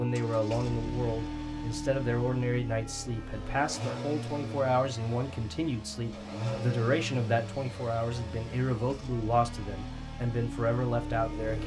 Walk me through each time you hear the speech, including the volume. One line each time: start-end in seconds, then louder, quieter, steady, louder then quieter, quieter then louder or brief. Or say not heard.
0.0-11.6 steady.